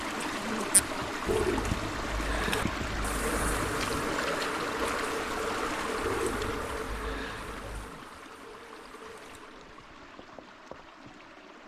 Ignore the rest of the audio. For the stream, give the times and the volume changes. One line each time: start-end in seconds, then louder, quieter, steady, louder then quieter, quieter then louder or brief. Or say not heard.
0.0-11.6 quieter.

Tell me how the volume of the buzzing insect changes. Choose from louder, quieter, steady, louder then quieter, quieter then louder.
quieter.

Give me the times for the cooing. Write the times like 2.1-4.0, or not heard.
1.2-4.2, 6.0-8.0.